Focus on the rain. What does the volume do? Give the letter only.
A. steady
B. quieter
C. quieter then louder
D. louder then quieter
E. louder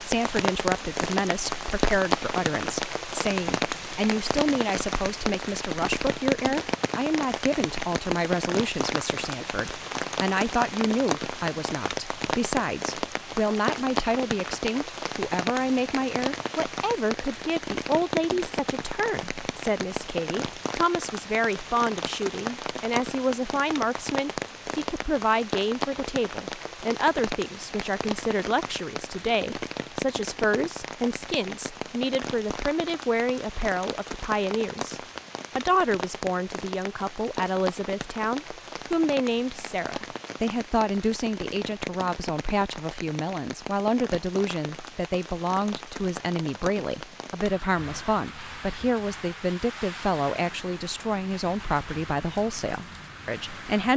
B.